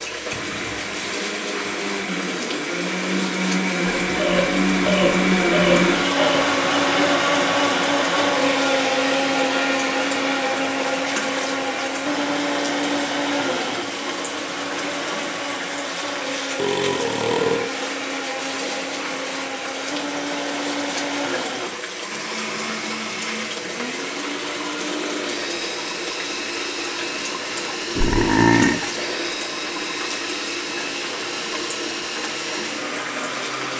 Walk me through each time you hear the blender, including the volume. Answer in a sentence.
The blender can be heard from 0.1 to 33.7 s, getting quieter.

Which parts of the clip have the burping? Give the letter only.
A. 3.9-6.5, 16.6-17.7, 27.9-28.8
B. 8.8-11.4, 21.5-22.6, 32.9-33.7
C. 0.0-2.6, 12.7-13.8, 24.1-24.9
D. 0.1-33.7
A.